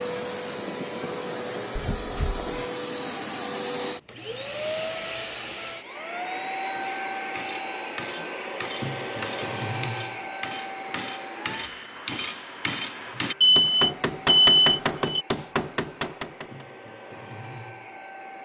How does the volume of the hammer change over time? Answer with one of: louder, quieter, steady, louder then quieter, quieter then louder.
louder.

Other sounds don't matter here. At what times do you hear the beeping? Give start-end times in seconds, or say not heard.
1.8-2.4, 13.4-15.2.